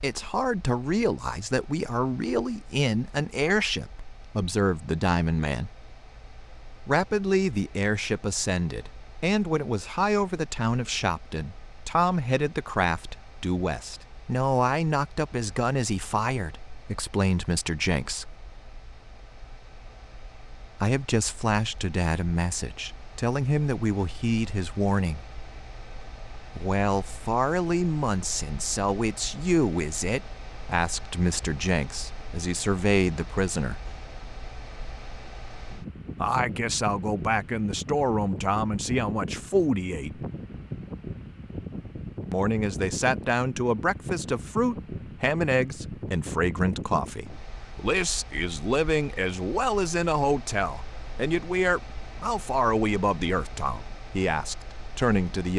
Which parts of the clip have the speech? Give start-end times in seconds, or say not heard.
0.0-5.7, 6.8-18.4, 20.8-25.2, 26.6-33.9, 36.1-40.2, 42.3-55.5.